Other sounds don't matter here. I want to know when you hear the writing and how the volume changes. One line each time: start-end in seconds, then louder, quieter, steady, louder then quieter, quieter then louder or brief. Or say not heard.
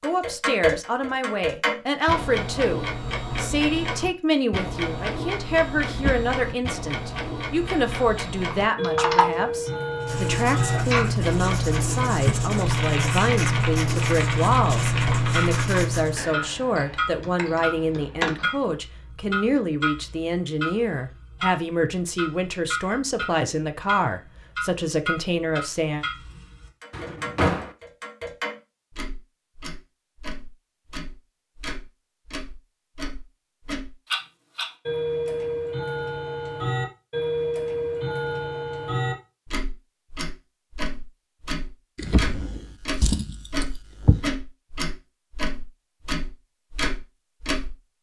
9.9-16.2 steady.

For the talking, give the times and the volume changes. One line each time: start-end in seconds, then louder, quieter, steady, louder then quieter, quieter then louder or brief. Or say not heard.
0.0-26.1 steady.